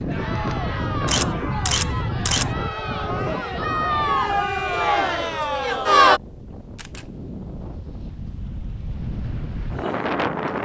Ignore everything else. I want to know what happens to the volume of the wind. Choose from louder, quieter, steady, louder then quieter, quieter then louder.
quieter then louder.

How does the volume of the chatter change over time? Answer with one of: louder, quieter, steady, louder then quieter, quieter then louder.
louder.